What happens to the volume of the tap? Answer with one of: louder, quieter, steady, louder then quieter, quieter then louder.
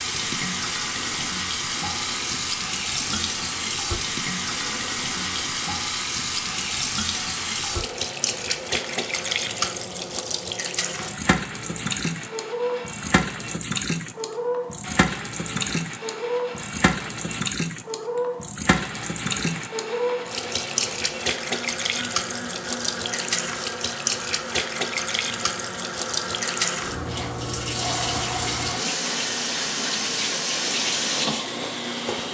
steady.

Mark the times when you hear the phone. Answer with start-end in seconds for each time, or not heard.
not heard.